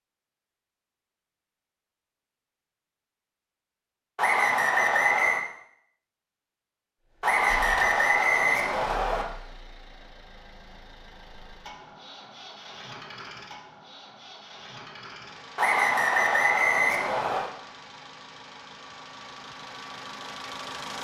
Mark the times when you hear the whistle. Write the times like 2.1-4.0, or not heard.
4.2-5.5, 7.2-9.2, 15.6-17.5.